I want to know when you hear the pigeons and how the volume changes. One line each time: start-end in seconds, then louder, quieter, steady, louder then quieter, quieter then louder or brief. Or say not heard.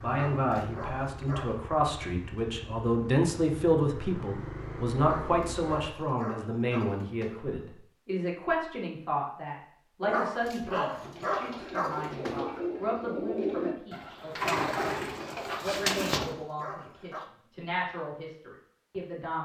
11.0-16.4 louder.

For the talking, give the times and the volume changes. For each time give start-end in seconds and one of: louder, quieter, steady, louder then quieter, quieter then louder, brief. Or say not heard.
0.0-19.4 quieter.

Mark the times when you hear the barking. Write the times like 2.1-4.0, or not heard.
0.1-1.6, 5.0-7.7, 10.0-12.7, 15.3-17.3.